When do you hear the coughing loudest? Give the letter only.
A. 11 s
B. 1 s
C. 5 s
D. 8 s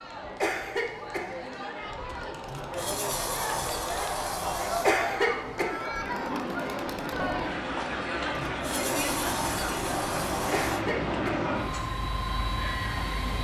C.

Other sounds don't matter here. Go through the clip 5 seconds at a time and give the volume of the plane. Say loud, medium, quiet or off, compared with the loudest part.
off, loud, loud.